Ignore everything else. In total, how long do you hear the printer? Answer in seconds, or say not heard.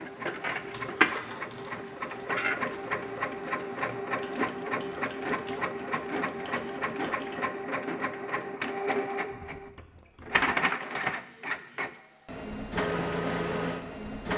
14 s.